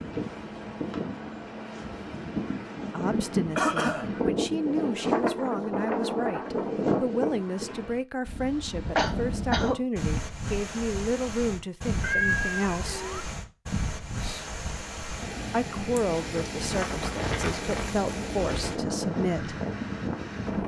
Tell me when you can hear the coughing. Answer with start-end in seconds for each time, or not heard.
3.5-4.1, 8.9-10.2, 14.1-14.5.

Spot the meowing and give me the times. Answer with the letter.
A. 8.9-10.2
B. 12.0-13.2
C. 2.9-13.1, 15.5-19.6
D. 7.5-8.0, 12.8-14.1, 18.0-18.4
B.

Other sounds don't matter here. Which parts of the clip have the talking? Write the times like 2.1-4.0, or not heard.
2.9-13.1, 15.5-19.6.